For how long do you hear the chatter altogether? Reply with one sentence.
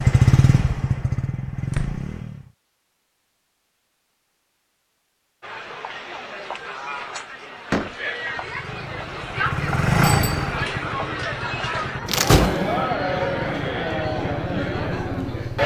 The chatter can be heard for 10 seconds in total.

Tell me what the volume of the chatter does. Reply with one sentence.
The loudness of the chatter goes up.